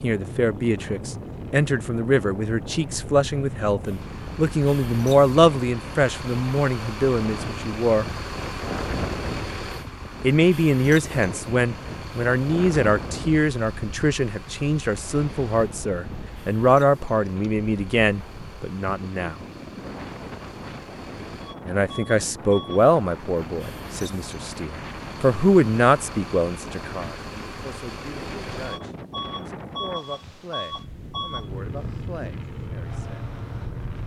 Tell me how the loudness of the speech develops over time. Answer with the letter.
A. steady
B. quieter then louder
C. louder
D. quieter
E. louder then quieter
D.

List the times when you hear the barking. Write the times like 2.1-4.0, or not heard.
not heard.